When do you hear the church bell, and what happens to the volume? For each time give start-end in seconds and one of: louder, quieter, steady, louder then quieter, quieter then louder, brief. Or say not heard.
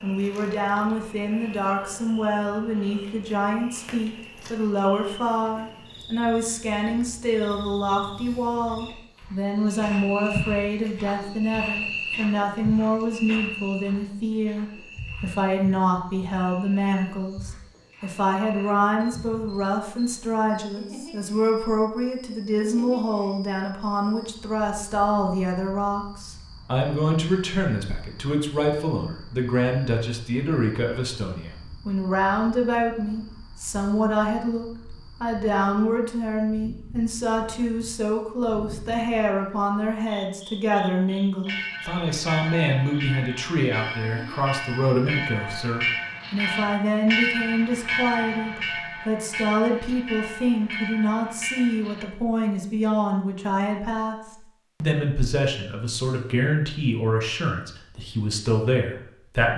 41.5-52.0 louder then quieter.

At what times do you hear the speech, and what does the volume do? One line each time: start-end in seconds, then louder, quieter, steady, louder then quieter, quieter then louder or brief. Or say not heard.
0.0-59.5 steady.